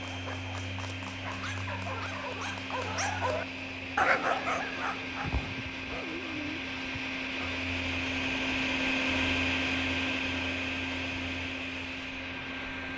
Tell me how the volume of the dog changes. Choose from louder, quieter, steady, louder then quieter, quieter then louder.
louder then quieter.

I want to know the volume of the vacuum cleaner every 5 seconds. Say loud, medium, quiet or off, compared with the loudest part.
medium, loud, loud.